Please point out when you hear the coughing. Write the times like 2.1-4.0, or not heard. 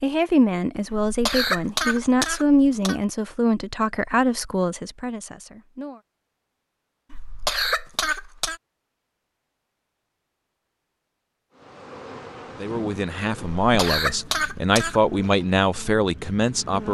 0.9-3.0, 7.1-8.6, 13.6-15.2.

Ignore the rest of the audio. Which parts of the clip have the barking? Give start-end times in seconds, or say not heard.
not heard.